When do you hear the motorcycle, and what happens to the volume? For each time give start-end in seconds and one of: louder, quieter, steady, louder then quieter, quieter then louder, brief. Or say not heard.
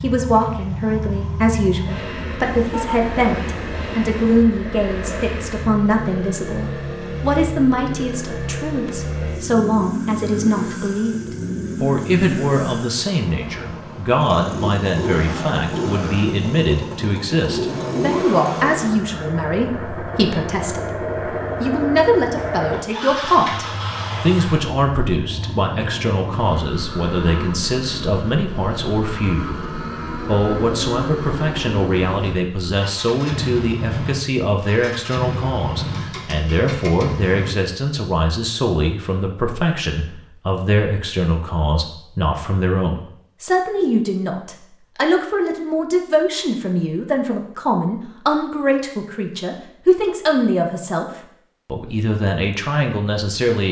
0.0-37.5 steady.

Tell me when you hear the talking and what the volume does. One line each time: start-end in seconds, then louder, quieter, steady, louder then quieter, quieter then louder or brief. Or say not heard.
0.0-29.6 steady
30.2-51.0 steady
51.7-53.6 brief.